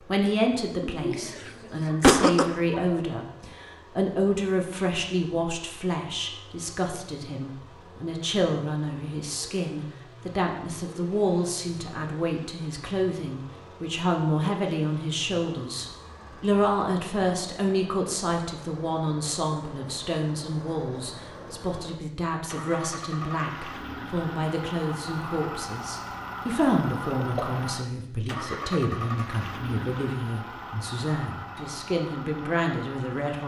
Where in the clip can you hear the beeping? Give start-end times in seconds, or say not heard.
not heard.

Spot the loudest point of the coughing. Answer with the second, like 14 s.
2 s.